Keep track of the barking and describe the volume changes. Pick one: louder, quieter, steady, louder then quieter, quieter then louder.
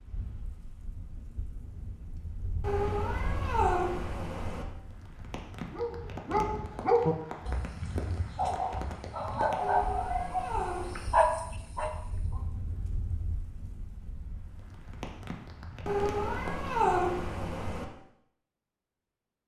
quieter then louder.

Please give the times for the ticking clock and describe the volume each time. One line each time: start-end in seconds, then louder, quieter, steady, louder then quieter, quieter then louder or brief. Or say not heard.
not heard.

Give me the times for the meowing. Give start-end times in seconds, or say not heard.
2.6-4.7, 9.6-11.2, 15.8-17.9.